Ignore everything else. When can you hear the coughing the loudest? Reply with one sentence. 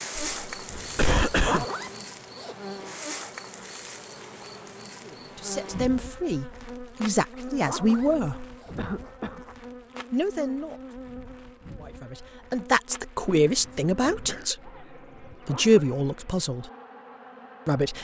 The loudest moment of the coughing is at 1 second.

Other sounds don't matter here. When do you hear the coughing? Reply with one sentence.
You can hear the coughing from 0.1 to 1.6 s, from 8.8 to 9.4 s and from 13.3 to 14.6 s.